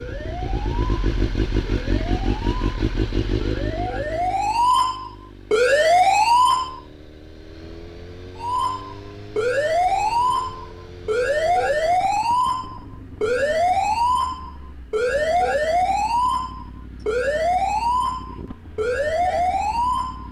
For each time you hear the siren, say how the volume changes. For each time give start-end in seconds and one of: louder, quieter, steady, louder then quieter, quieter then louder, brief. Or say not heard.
0.0-6.8 louder
8.3-20.2 steady.